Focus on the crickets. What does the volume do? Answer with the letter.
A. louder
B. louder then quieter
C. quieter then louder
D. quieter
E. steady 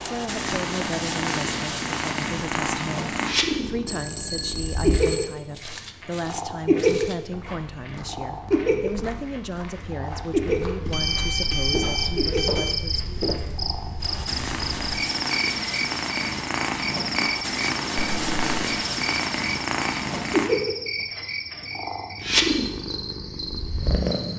D.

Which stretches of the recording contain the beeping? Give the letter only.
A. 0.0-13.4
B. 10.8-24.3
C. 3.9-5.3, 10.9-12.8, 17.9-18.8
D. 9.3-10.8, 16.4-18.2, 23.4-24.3
C.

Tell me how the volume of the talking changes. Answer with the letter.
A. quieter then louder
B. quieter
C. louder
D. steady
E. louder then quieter
D.